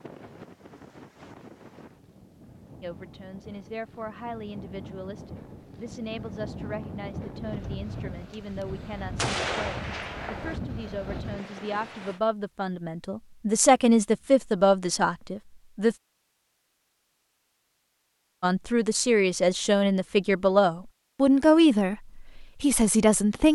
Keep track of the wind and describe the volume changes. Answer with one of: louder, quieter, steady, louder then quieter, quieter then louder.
louder.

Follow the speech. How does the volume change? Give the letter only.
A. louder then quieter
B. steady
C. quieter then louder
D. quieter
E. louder
E.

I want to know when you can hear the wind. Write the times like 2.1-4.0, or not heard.
0.0-12.2.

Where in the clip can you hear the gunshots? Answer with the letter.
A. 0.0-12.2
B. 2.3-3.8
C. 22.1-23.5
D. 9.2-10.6
D.